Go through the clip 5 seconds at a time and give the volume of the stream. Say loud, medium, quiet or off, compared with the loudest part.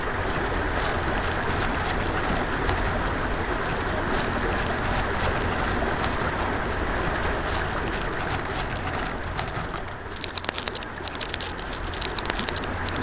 loud, loud, medium.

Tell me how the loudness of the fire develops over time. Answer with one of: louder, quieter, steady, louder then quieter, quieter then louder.
steady.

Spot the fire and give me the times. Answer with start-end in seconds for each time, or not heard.
0.1-12.9.